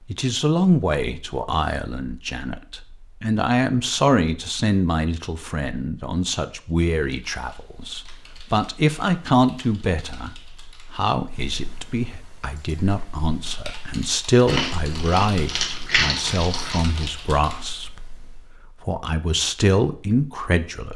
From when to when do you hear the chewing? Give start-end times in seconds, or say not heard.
14.4-17.1.